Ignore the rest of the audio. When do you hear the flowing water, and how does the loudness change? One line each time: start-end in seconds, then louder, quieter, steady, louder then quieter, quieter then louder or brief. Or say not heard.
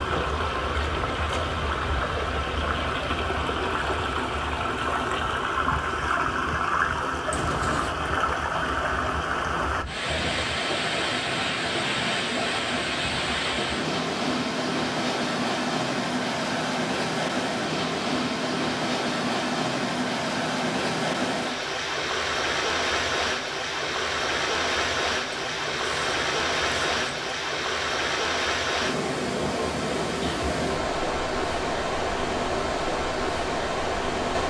0.0-34.4 steady.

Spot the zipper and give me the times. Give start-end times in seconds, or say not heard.
7.3-8.0, 25.3-27.4.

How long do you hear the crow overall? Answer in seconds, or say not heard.
not heard.